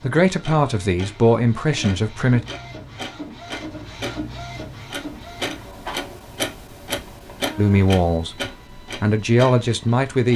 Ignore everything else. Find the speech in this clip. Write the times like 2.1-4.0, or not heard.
0.0-2.4, 7.5-10.3.